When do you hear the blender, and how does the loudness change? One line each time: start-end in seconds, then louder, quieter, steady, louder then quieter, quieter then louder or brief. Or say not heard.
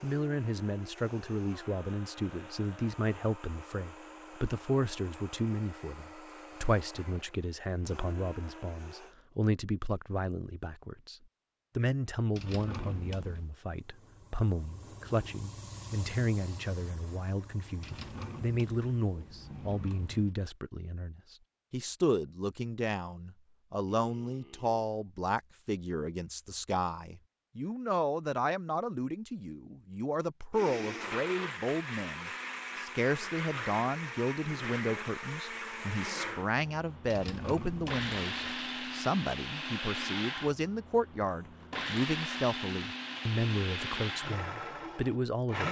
0.0-9.2 steady
30.5-45.6 steady.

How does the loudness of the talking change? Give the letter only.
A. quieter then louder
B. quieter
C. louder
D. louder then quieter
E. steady
E.